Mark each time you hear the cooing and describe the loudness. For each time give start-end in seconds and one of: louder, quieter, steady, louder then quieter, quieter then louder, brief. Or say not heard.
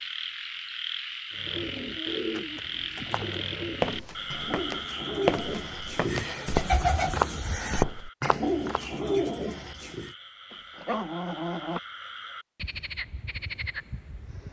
1.3-10.2 louder.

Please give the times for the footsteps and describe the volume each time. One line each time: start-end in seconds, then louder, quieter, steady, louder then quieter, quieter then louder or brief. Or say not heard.
2.4-8.8 quieter then louder.